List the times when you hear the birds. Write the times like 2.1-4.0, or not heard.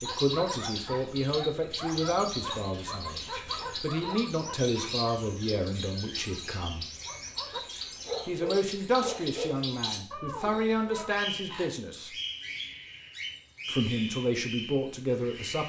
0.0-15.6.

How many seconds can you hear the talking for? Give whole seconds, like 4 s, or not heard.
13 s.